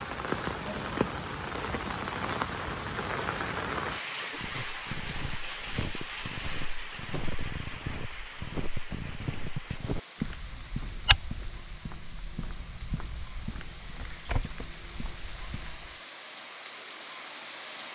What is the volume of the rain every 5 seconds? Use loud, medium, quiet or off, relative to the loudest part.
loud, medium, quiet, medium.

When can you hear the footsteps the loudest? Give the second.
11 s.